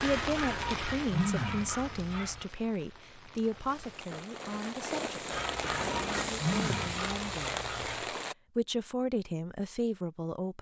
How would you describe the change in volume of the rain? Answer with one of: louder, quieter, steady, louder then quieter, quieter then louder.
quieter then louder.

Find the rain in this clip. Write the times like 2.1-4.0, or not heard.
0.0-8.3.